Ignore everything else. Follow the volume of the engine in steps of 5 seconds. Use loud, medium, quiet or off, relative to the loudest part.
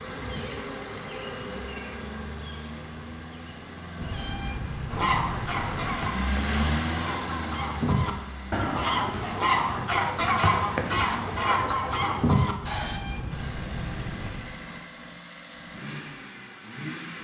medium, loud, medium, medium.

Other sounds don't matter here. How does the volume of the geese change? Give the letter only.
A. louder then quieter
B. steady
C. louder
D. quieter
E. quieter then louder
C.